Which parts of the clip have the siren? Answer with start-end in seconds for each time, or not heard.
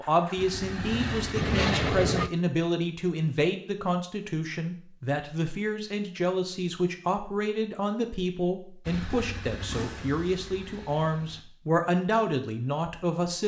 not heard.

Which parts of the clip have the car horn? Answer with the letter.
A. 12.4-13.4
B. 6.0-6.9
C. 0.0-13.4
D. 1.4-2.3
D.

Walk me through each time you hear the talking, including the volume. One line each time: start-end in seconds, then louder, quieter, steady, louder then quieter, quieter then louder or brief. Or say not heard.
0.0-13.4 steady.